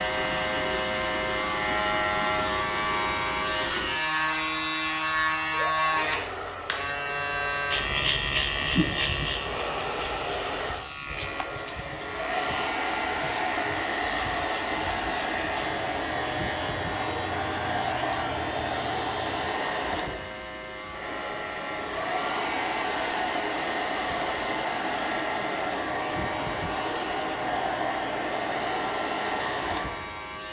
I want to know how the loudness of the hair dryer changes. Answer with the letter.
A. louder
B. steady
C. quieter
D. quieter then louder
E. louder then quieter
A.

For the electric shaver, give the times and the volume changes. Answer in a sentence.
You can hear the electric shaver from 0.0 to 30.4 s, getting quieter.